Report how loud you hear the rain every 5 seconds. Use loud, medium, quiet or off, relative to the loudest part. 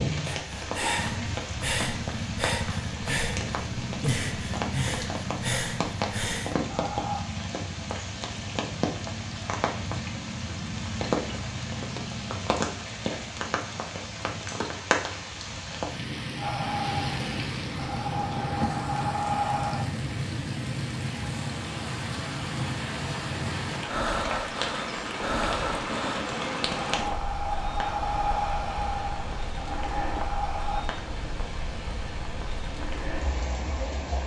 loud, loud, loud, loud, loud, loud, medium.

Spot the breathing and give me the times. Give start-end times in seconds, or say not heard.
0.2-7.3, 16.4-19.9, 23.9-30.9.